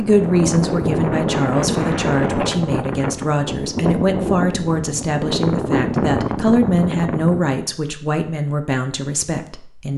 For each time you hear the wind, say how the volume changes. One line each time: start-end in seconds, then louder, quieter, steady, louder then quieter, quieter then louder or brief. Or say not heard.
0.0-7.6 steady.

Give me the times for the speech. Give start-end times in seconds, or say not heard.
0.0-9.9.